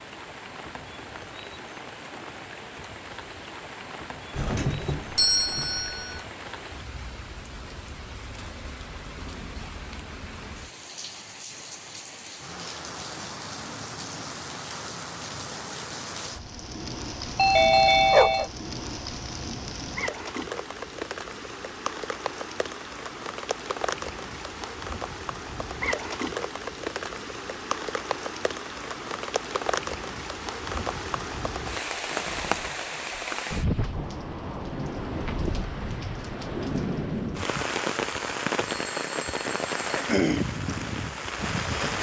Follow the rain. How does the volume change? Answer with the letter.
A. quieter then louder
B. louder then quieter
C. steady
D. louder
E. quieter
D.